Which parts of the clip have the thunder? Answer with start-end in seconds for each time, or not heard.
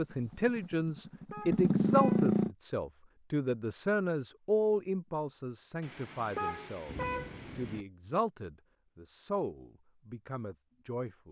5.8-7.8.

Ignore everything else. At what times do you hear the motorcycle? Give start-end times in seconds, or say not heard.
0.0-2.5.